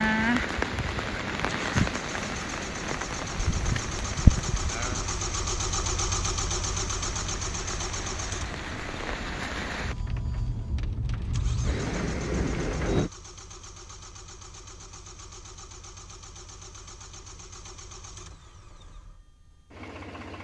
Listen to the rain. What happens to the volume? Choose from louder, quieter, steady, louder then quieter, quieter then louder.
quieter then louder.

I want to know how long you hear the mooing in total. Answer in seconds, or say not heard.
2 s.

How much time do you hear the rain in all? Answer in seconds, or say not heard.
13 s.